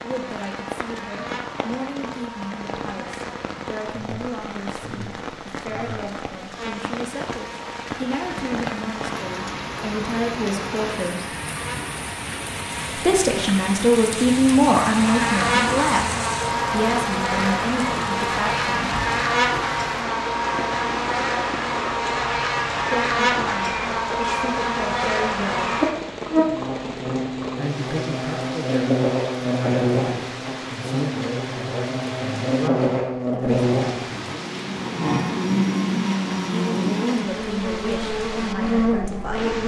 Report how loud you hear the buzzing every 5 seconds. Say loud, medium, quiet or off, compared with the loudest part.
quiet, quiet, quiet, loud, loud, loud, loud, loud.